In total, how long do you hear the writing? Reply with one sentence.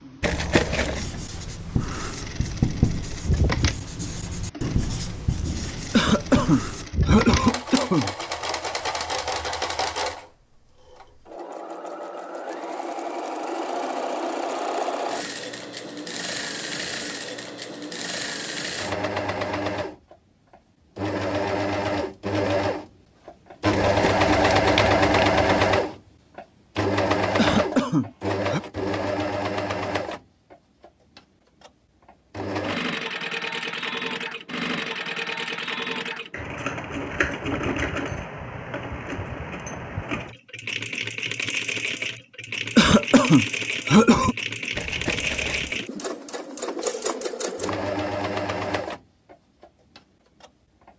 The writing can be heard for 6 seconds in total.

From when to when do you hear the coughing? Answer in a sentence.
You can hear the coughing from 5.9 to 8.2 s, from 27.4 to 28.6 s and from 42.8 to 44.4 s.